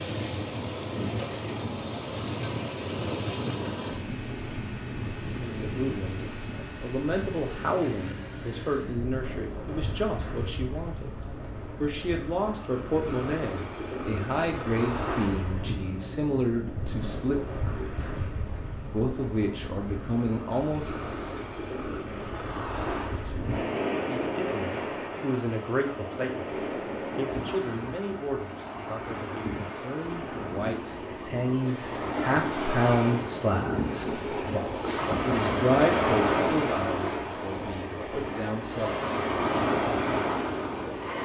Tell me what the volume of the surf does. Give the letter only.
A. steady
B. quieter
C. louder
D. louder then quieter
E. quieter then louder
C.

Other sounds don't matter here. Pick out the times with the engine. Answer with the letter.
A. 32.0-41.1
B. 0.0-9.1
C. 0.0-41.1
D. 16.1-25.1
B.